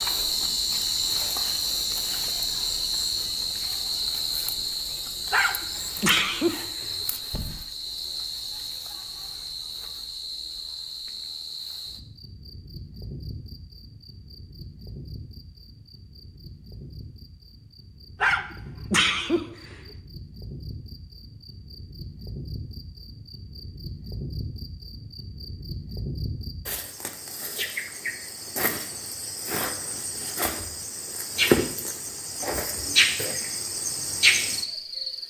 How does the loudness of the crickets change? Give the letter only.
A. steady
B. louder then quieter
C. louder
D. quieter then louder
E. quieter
D.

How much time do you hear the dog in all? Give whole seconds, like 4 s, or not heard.
3 s.